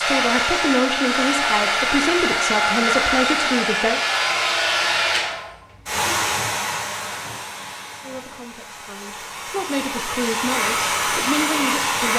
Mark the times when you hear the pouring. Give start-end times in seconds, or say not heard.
not heard.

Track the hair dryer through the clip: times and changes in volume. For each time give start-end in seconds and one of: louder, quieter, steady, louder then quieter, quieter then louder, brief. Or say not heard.
0.0-12.1 quieter then louder.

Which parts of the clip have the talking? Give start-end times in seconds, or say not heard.
0.0-4.0, 8.0-12.1.